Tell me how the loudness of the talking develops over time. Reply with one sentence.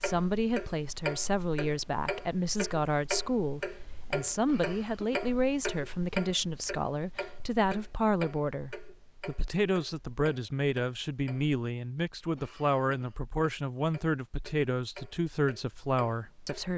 The loudness of the talking stays about the same.